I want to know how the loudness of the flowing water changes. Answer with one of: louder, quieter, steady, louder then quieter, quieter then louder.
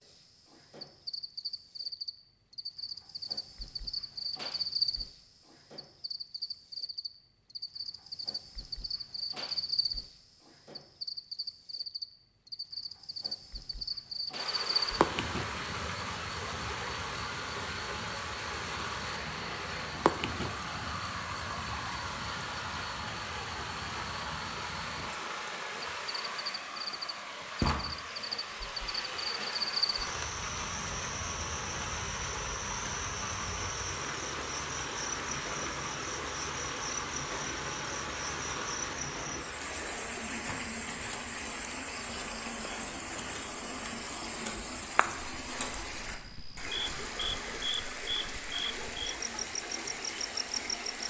steady.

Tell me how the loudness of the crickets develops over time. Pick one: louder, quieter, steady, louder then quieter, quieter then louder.
steady.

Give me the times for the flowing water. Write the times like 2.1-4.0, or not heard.
14.3-51.0.